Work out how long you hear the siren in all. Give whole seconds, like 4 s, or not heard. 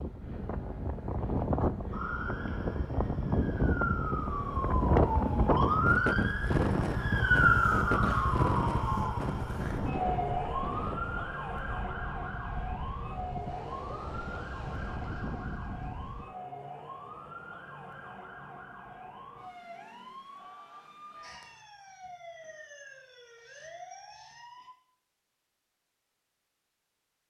23 s.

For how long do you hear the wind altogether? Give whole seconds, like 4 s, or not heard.
16 s.